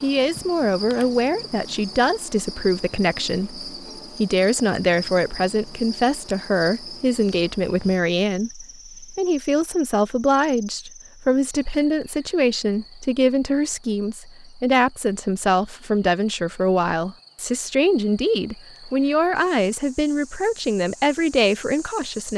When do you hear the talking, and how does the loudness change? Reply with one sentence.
The talking can be heard from 0.0 to 22.3 s, at a steady volume.